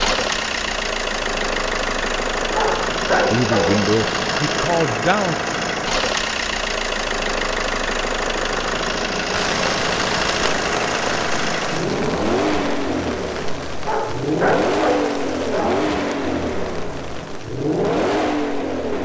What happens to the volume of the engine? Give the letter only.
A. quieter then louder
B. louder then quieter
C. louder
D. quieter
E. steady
E.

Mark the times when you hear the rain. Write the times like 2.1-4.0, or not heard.
9.3-18.9.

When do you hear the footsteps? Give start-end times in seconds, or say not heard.
not heard.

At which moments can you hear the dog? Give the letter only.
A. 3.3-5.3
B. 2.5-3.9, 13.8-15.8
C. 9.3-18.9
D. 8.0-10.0
B.